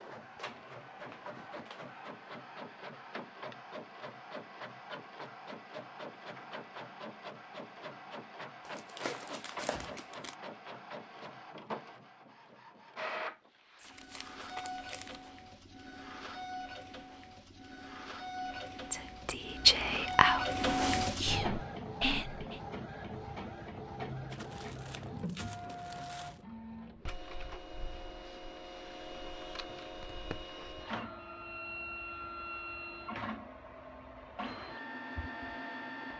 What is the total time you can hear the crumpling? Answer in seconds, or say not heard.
5 s.